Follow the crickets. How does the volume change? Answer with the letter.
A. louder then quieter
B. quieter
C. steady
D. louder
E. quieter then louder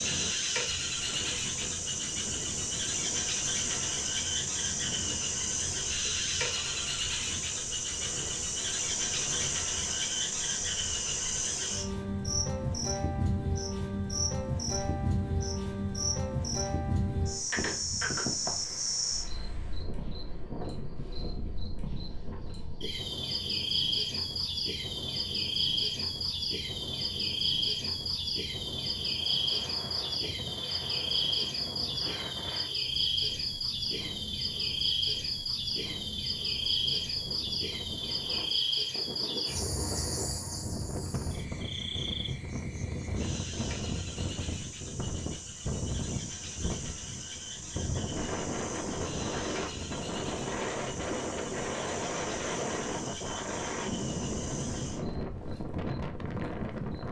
B.